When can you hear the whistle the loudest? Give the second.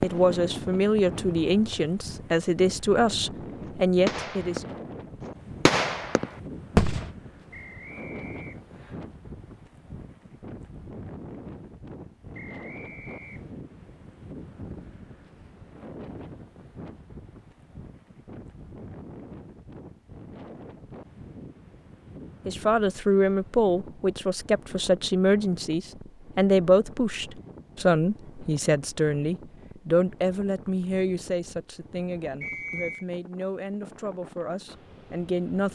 33 s.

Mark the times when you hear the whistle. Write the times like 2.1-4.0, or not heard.
7.5-9.0, 12.3-13.6, 32.4-33.0.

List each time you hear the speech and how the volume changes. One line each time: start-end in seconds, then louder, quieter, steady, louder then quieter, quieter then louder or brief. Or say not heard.
0.0-4.6 steady
22.4-35.6 quieter.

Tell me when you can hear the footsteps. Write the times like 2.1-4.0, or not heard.
not heard.